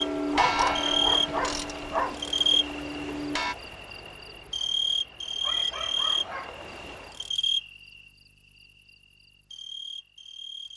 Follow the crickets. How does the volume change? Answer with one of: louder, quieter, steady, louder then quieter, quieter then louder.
quieter.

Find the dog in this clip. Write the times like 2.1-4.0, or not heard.
0.3-2.2, 5.4-6.7.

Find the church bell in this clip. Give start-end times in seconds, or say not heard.
0.0-3.5.